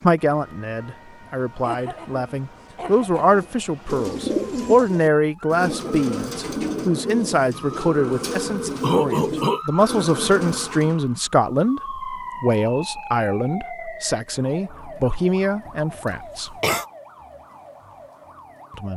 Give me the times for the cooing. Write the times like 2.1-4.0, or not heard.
3.2-11.0.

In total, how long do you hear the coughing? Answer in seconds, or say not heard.
4 s.